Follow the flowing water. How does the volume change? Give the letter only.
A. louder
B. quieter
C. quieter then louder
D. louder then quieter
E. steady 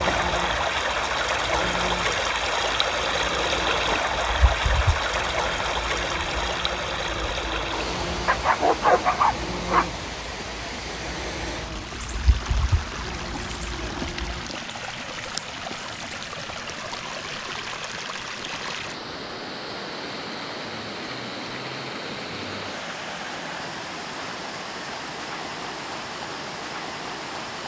B.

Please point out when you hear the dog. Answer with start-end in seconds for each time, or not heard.
8.2-9.8.